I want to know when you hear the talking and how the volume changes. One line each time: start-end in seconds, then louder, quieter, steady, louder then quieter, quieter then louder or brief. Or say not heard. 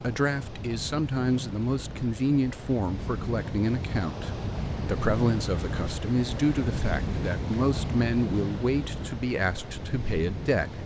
0.0-10.8 steady.